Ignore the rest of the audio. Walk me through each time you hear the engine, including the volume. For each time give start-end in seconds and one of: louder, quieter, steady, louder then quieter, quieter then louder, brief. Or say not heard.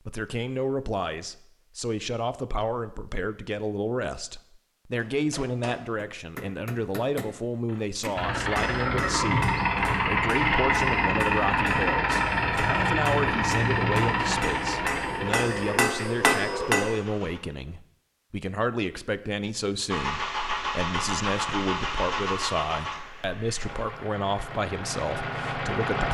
8.2-17.4 quieter
19.9-26.0 quieter then louder.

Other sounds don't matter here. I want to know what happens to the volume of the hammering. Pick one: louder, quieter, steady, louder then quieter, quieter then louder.
louder.